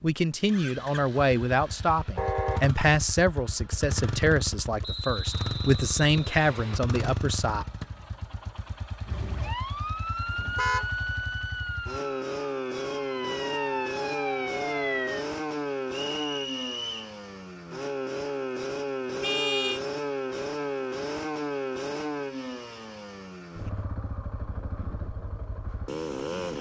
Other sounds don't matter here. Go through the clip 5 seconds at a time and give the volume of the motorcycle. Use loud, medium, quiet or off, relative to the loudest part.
medium, medium, loud, loud, loud, loud.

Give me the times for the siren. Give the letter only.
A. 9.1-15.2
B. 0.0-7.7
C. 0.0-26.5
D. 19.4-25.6
A.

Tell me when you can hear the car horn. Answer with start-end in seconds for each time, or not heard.
2.1-2.7, 10.4-10.9, 19.2-19.8.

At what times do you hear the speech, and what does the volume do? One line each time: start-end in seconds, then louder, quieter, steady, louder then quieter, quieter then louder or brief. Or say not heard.
0.0-7.7 steady.